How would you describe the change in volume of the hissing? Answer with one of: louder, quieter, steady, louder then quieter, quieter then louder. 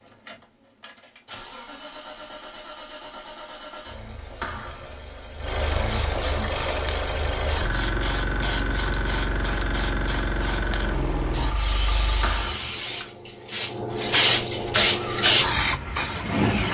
louder.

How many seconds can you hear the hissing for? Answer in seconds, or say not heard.
11 s.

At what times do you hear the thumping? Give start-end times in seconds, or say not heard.
4.4-5.0, 12.2-12.8.